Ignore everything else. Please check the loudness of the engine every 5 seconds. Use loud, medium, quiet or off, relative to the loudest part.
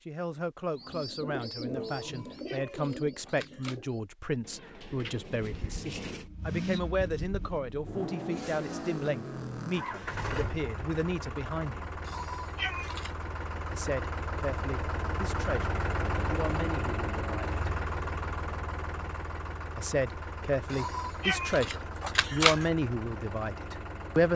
off, loud, loud, loud, medium.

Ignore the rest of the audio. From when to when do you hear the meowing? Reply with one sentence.
The meowing can be heard from 1.9 to 3.8 s, from 12.0 to 13.2 s and from 20.7 to 22.6 s.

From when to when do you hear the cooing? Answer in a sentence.
You can hear the cooing from 0.8 to 6.2 s.